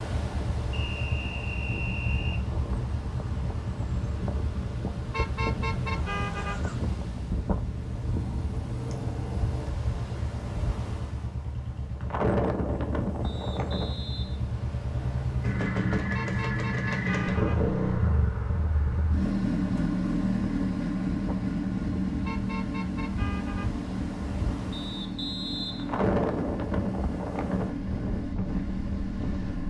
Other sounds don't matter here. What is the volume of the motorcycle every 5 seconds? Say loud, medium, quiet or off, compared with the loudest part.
medium, medium, medium, loud, loud, medium.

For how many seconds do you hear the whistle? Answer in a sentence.
The whistle can be heard for 5 seconds in total.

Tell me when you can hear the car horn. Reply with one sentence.
The car horn can be heard from 5.1 to 6.6 s, from 16.1 to 17.6 s and from 22.2 to 23.7 s.